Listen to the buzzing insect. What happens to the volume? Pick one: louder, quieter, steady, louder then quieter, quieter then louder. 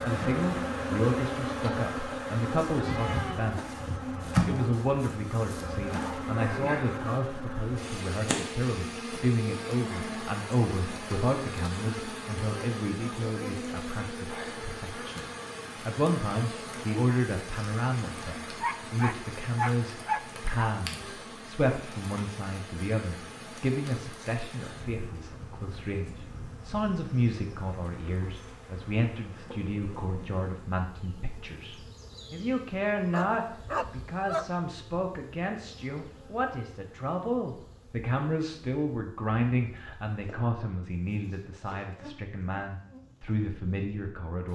quieter.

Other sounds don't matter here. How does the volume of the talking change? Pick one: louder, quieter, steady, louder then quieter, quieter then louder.
steady.